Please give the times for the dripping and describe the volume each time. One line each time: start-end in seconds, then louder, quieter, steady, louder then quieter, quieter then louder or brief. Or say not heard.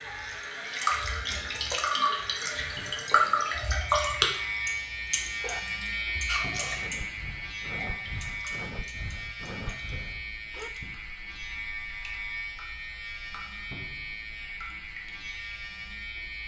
0.0-16.4 quieter.